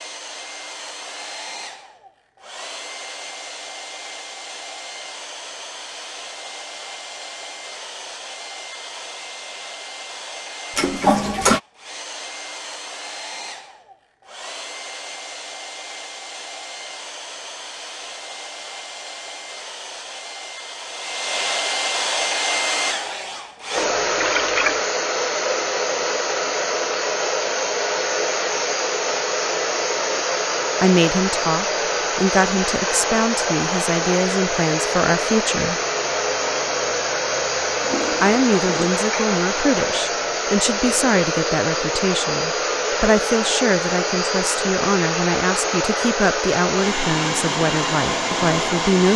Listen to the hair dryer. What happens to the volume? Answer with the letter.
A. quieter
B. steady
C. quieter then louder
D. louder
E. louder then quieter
D.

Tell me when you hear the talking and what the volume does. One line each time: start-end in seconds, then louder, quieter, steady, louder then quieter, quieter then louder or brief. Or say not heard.
30.8-35.8 steady
38.2-49.1 steady.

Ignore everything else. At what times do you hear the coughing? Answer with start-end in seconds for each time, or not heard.
not heard.